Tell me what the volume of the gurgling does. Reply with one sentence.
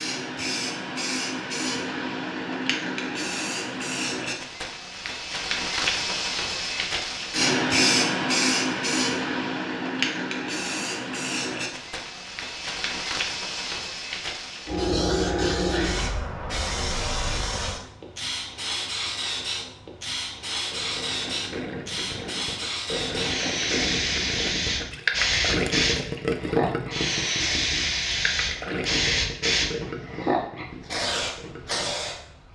The volume of the gurgling goes up, then down.